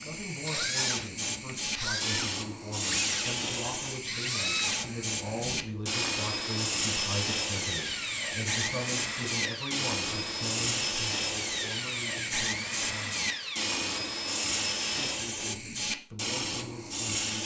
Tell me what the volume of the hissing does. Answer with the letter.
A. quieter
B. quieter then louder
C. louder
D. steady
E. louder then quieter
D.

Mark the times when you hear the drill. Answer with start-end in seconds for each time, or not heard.
0.0-15.2.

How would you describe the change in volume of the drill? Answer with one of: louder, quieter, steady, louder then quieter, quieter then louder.
steady.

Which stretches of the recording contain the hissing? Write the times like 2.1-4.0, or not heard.
0.0-17.4.